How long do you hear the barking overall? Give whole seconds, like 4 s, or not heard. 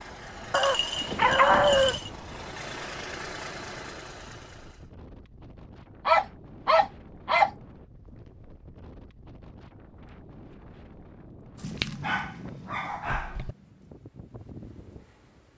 5 s.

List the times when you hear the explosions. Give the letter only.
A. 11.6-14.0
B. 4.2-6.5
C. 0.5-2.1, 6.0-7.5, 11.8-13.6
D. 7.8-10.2
A.